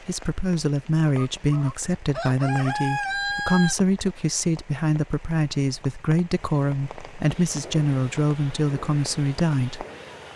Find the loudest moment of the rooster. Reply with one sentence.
The volume of the rooster peaks at 3 seconds.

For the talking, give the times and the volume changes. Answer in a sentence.
The talking can be heard from 0.1 to 9.8 s, at a steady volume.